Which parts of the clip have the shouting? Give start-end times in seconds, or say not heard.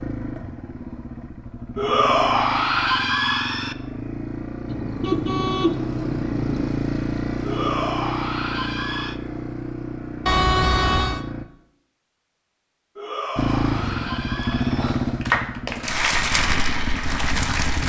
1.8-3.8, 7.4-9.2, 12.9-14.9.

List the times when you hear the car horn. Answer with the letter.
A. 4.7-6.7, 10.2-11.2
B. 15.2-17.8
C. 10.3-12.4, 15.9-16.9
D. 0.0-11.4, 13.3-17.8
A.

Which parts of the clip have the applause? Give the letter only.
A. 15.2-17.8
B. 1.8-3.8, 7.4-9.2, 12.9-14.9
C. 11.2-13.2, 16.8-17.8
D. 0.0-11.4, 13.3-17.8
A.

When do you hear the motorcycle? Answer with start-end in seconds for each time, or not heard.
0.0-11.4, 13.3-17.8.